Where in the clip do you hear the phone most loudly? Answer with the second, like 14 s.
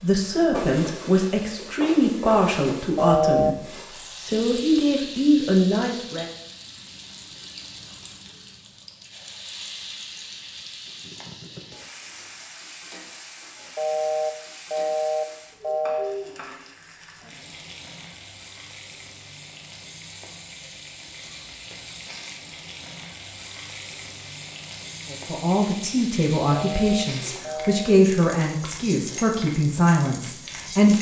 3 s.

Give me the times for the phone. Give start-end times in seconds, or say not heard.
3.0-3.5, 13.8-16.1, 26.5-27.9.